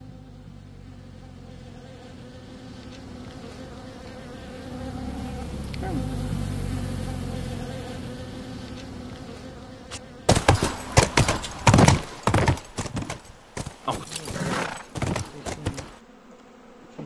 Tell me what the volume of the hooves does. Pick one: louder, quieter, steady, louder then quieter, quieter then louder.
quieter.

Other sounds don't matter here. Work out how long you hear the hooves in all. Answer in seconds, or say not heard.
6 s.